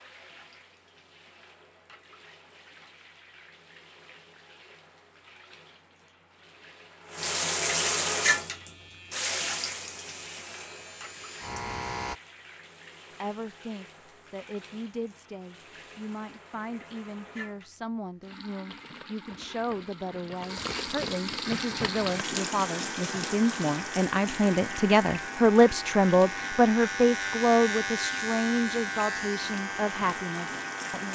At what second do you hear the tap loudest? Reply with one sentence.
The volume of the tap peaks at 8 seconds.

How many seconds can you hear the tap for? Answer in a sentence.
You can hear the tap for 31 seconds altogether.